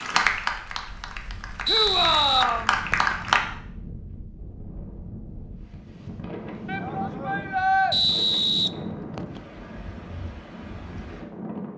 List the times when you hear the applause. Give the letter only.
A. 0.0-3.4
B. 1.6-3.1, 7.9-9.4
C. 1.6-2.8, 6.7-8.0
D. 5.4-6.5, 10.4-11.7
A.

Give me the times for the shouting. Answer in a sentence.
The shouting can be heard from 1.6 to 2.8 s and from 6.7 to 8.0 s.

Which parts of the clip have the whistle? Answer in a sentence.
You can hear the whistle from 1.6 to 3.1 s and from 7.9 to 9.4 s.